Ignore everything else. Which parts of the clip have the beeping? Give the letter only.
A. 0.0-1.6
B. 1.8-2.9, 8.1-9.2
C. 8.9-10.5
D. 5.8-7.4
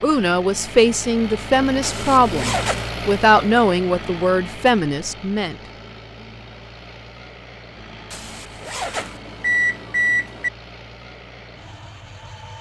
C.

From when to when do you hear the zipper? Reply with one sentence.
The zipper can be heard from 1.8 to 2.9 s and from 8.1 to 9.2 s.